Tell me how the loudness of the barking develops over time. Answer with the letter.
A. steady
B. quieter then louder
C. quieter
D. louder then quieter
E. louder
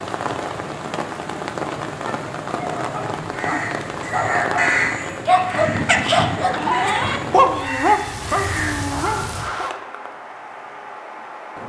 D.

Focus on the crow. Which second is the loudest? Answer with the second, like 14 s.
5 s.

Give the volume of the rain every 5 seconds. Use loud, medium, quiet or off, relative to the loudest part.
loud, loud, medium.